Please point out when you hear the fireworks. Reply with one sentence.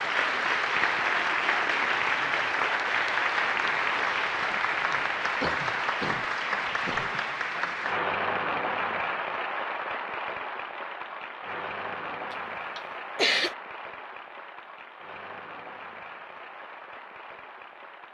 You can't hear the fireworks here.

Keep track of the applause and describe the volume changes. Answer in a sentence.
The volume of the applause goes down.